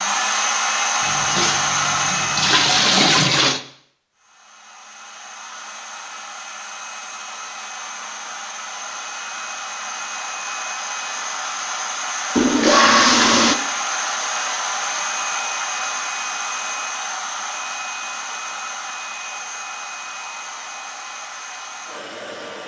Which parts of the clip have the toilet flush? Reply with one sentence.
You can hear the toilet flush from 1.1 to 3.6 s and from 12.3 to 13.6 s.